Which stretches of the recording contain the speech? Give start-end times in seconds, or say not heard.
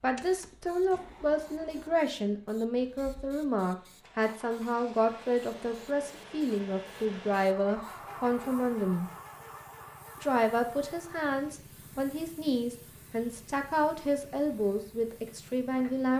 0.0-9.1, 10.2-16.1.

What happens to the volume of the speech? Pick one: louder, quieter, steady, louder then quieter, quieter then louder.
steady.